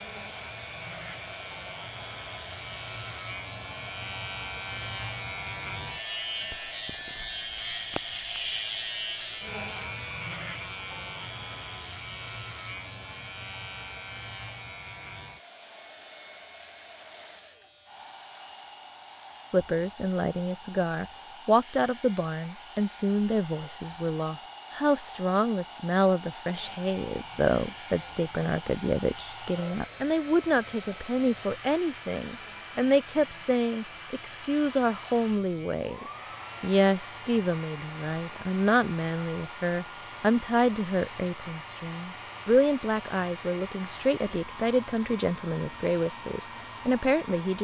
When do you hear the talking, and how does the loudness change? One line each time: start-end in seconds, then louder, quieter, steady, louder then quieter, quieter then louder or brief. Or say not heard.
19.5-47.5 steady.